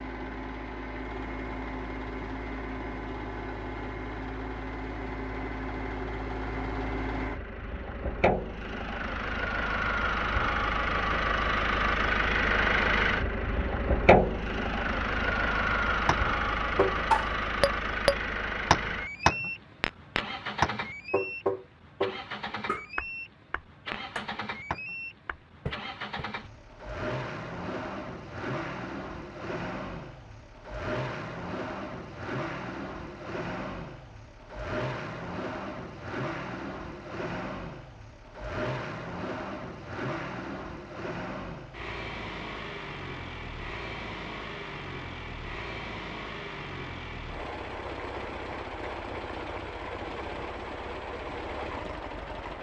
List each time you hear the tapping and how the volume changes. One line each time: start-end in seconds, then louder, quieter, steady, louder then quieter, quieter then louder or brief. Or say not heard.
16.1-26.3 quieter.